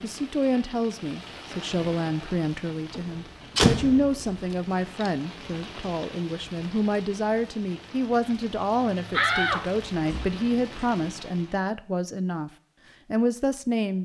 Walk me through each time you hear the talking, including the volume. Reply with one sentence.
You can hear the talking from 0.0 to 12.5 s, at a steady volume; and briefly from 13.1 to 14.0 s.